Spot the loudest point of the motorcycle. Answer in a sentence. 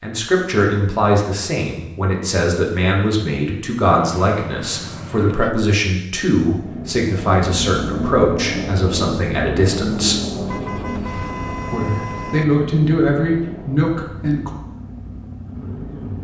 The loudest moment of the motorcycle is at 10 seconds.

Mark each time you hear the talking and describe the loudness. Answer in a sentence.
The talking can be heard from 0.0 to 10.2 s, at a steady volume; and briefly from 11.7 to 14.5 s.